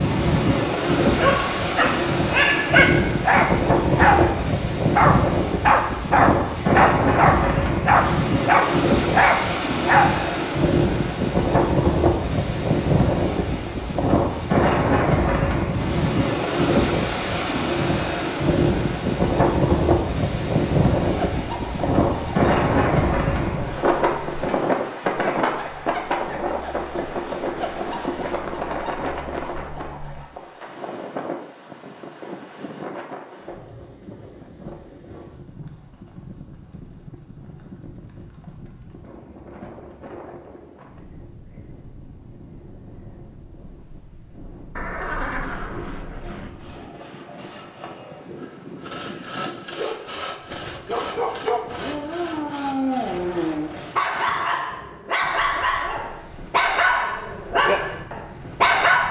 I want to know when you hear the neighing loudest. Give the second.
45 s.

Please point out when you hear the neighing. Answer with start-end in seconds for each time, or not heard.
44.8-46.5.